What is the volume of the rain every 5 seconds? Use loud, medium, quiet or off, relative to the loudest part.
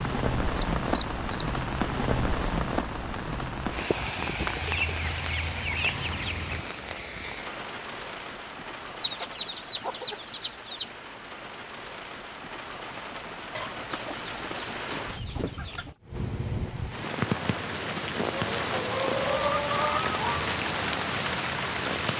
loud, medium, medium, loud, loud.